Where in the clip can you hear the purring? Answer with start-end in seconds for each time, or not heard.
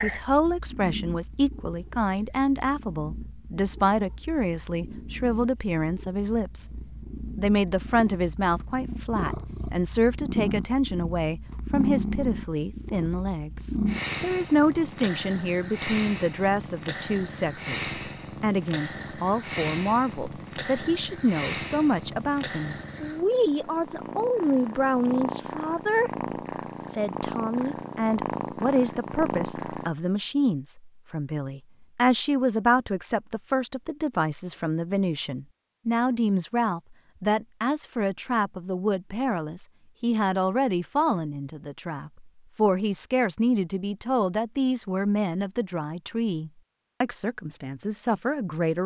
0.0-29.9.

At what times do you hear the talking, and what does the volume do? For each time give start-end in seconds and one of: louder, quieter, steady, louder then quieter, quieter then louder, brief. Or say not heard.
0.0-26.1 steady
26.8-48.8 steady.